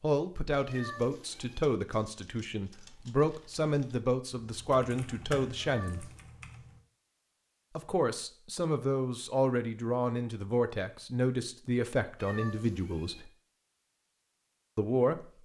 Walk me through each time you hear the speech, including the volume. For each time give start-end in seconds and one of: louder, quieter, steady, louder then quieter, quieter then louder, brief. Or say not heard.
0.0-6.1 steady
7.8-13.3 steady
14.8-15.4 brief.